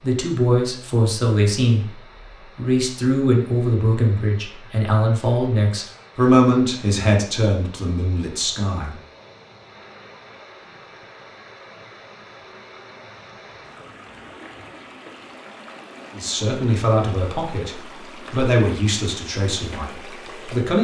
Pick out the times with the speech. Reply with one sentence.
You can hear the speech from 0.0 to 8.9 s and from 16.1 to 20.7 s.